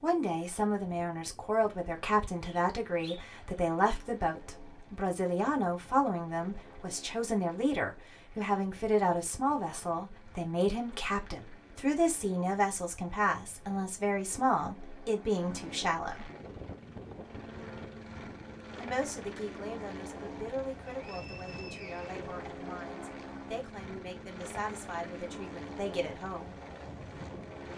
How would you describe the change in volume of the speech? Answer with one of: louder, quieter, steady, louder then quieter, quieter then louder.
quieter.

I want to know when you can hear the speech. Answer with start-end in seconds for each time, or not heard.
0.0-16.3, 18.8-26.6.